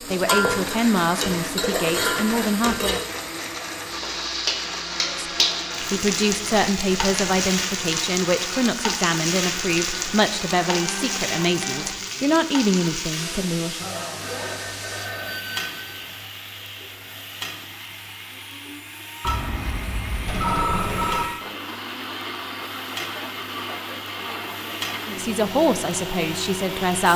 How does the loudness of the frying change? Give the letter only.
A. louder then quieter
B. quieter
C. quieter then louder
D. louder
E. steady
B.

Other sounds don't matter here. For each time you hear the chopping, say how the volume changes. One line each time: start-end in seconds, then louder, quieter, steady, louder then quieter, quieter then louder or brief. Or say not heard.
not heard.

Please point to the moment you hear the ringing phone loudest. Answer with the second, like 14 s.
21 s.